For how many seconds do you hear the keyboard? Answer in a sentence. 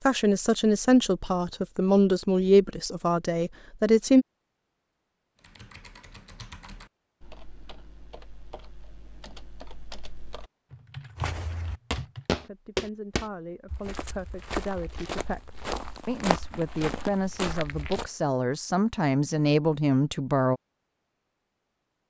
The keyboard can be heard for 7 seconds in total.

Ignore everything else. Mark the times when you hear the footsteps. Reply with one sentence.
The footsteps can be heard from 11.2 to 18.1 s.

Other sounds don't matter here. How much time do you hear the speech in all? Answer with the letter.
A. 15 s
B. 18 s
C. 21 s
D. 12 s
D.